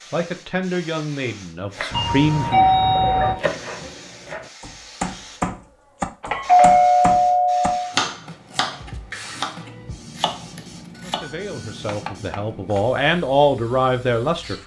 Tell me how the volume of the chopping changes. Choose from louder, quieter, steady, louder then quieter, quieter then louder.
louder then quieter.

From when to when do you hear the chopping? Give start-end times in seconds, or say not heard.
1.7-12.8.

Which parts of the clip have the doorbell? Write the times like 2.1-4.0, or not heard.
1.9-3.4, 6.2-7.9, 10.9-11.6.